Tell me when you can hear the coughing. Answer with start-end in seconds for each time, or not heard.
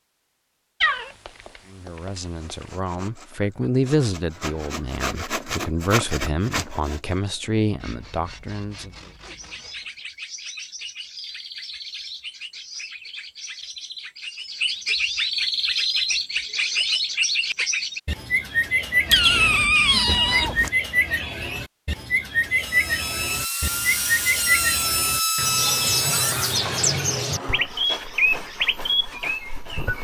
not heard.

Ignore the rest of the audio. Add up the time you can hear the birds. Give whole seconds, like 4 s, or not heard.
21 s.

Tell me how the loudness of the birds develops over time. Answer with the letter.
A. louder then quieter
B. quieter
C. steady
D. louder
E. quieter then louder
D.